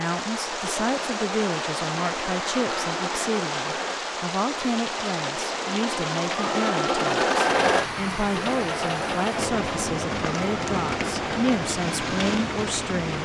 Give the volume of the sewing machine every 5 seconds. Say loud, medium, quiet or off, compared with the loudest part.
medium, loud, medium.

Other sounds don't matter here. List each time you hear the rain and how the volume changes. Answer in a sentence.
You can hear the rain from 0.0 to 13.2 s, at a steady volume.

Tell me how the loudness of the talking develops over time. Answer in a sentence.
The loudness of the talking stays about the same.